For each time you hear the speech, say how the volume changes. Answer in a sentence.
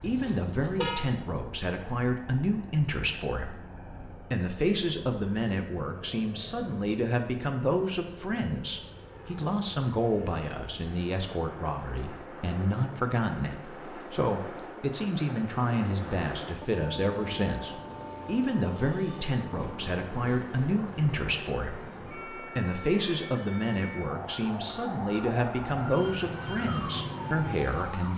You can hear the speech from 0.0 to 28.1 s, at a steady volume.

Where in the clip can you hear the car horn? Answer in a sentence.
The car horn can be heard from 0.0 to 1.0 s.